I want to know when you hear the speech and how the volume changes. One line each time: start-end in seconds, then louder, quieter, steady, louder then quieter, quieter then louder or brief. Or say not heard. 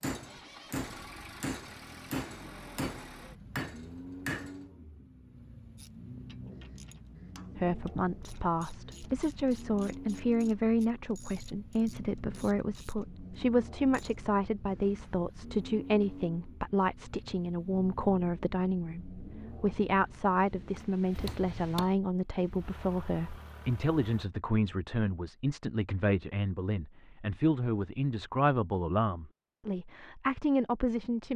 7.5-31.3 steady.